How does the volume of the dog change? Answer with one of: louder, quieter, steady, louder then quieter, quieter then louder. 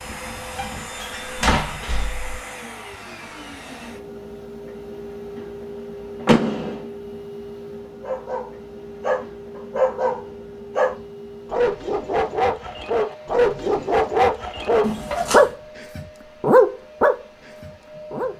louder.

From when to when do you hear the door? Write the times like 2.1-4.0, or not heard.
0.6-2.4, 6.2-6.8, 14.8-15.5.